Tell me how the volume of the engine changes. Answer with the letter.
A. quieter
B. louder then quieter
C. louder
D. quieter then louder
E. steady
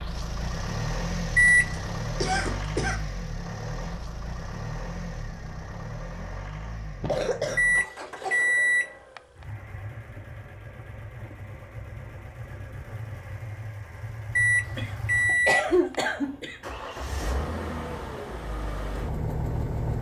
D.